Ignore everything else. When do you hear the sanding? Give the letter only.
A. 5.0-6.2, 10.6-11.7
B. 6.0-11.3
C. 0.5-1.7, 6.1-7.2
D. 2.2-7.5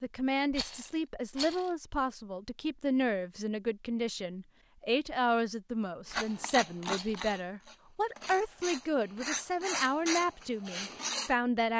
B.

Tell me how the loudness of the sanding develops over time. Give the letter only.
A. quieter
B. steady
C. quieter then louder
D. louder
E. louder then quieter
C.